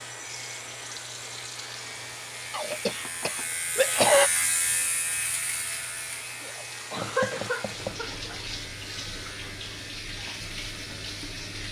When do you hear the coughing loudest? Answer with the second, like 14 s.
4 s.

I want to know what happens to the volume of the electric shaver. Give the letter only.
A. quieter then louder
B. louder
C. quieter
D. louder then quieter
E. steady
D.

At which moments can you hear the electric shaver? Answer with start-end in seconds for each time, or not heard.
0.0-11.6.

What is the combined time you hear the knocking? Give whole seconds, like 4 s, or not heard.
2 s.